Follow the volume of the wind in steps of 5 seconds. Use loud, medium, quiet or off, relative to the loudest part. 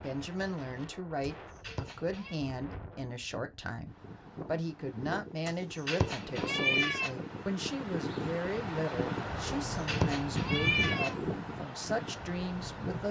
quiet, loud, loud.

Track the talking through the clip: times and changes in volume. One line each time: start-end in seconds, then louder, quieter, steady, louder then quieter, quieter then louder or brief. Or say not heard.
0.0-13.0 steady.